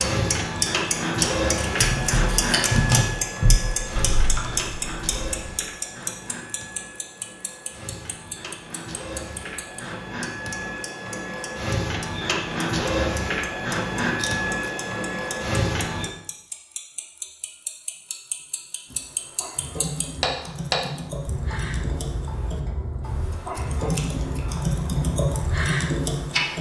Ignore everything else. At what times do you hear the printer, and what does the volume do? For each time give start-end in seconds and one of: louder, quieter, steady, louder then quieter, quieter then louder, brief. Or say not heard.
0.0-16.1 quieter then louder.